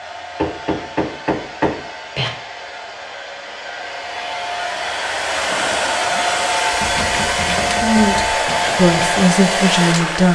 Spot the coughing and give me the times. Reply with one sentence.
The coughing can't be heard in this clip.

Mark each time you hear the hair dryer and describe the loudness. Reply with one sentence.
You can hear the hair dryer from 0.0 to 10.3 s, getting louder.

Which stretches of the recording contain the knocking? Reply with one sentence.
The knocking can be heard from 0.3 to 2.3 s and from 6.7 to 8.4 s.